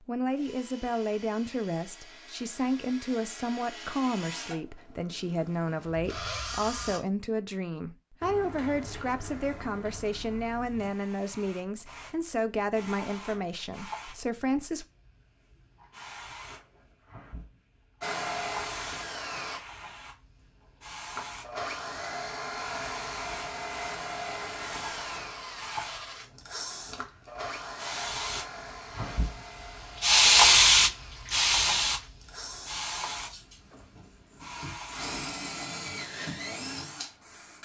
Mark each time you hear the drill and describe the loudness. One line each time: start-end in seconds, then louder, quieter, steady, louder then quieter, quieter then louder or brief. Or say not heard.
0.3-7.0 louder
18.0-19.6 brief
21.1-37.6 quieter then louder.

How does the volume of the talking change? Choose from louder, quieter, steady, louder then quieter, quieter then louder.
steady.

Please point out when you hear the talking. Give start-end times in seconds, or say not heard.
0.0-14.8.